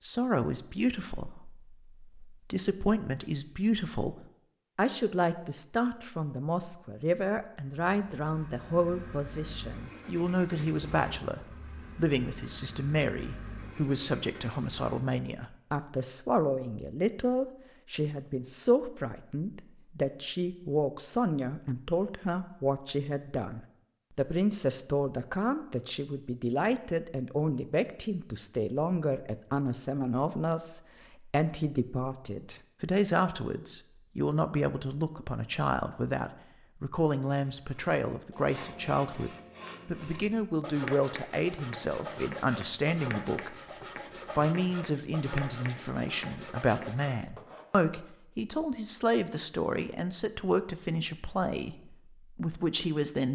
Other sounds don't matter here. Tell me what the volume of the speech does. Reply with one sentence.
The volume of the speech stays about the same.